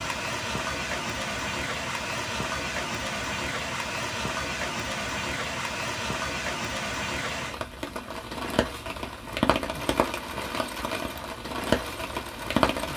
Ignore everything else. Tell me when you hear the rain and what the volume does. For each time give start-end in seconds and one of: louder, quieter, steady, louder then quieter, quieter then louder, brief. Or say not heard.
0.0-12.9 steady.